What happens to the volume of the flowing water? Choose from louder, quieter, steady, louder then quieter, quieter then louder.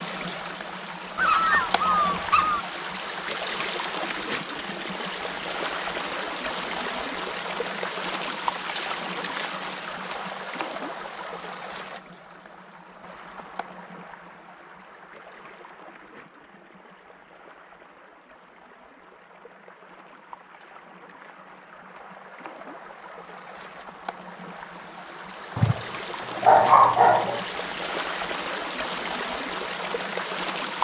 quieter then louder.